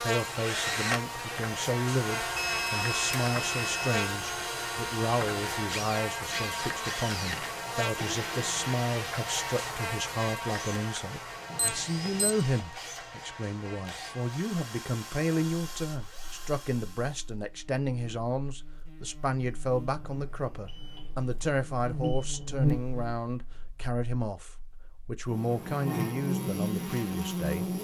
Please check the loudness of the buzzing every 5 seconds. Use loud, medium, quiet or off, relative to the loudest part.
loud, loud, medium, quiet, loud, loud.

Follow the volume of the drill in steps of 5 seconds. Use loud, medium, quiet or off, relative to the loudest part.
loud, loud, medium, medium, off, off.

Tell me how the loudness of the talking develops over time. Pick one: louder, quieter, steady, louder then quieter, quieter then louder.
steady.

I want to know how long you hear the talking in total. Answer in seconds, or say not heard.
28 s.